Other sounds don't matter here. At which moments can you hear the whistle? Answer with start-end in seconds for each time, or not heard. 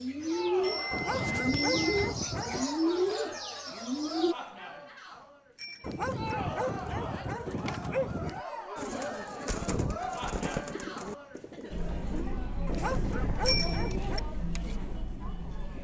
not heard.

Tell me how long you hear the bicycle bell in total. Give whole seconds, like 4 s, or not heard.
3 s.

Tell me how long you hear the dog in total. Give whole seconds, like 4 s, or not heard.
6 s.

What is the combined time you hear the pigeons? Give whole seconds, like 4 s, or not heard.
8 s.